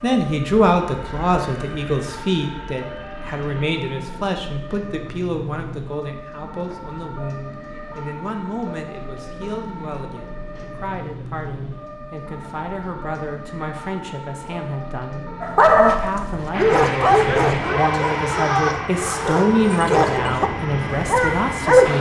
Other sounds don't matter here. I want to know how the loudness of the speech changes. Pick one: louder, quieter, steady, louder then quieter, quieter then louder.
quieter then louder.